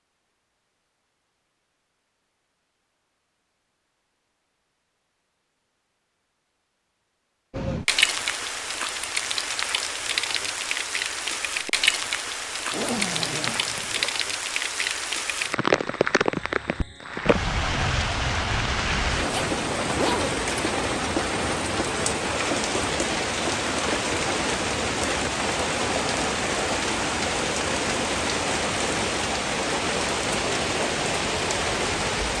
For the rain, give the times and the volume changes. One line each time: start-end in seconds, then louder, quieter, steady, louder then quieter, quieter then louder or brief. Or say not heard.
7.5-32.3 steady.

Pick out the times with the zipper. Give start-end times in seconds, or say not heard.
12.7-14.2, 19.1-20.4.